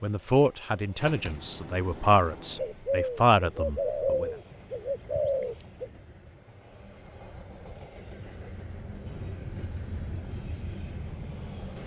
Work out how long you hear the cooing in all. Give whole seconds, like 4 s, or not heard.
3 s.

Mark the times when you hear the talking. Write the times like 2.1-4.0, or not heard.
0.0-4.3.